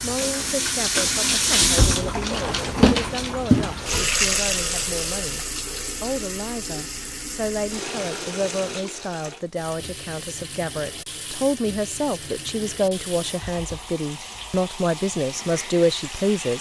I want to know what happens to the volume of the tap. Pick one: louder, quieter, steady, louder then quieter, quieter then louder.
quieter.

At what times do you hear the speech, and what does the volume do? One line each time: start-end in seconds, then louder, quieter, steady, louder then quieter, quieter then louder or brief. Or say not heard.
0.0-16.5 louder.